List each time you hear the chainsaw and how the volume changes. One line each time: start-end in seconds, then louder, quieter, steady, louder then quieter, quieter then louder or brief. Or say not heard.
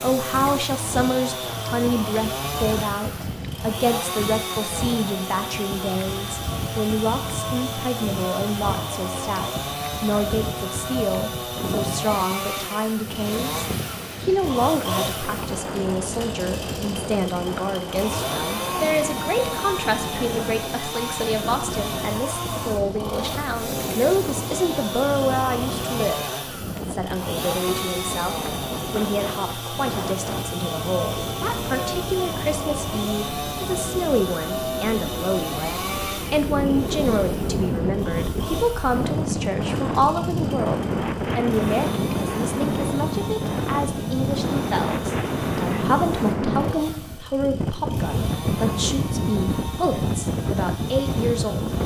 0.0-51.8 quieter.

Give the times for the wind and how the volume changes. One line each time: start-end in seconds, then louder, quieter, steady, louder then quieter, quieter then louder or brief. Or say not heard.
0.1-51.8 louder.